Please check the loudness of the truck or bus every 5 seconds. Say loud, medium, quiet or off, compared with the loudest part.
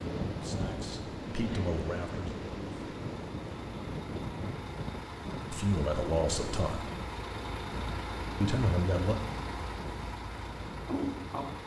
medium, loud, loud.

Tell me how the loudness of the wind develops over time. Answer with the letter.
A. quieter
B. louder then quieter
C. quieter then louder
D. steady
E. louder
A.